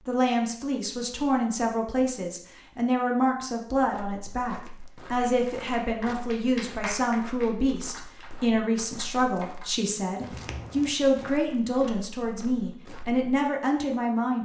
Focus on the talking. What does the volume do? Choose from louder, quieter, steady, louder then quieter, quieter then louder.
steady.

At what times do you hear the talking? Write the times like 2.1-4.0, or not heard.
0.1-14.3.